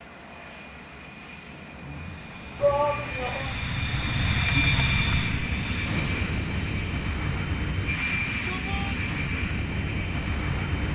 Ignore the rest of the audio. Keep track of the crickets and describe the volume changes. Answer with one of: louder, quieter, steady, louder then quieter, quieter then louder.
louder then quieter.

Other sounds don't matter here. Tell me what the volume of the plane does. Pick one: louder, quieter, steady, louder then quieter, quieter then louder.
louder.